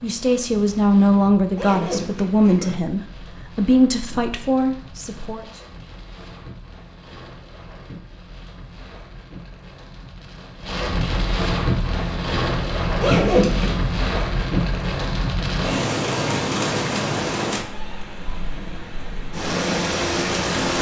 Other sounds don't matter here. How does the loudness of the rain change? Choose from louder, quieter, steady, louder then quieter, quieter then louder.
louder.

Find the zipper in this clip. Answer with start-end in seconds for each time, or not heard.
1.6-2.8, 13.0-13.8.